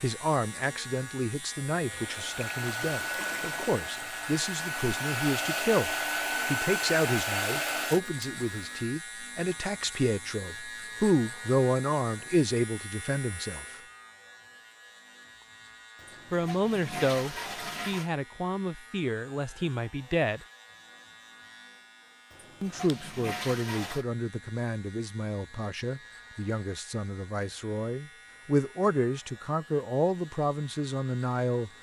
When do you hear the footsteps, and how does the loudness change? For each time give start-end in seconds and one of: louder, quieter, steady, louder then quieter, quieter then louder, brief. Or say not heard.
not heard.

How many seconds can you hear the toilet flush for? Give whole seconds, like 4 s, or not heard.
6 s.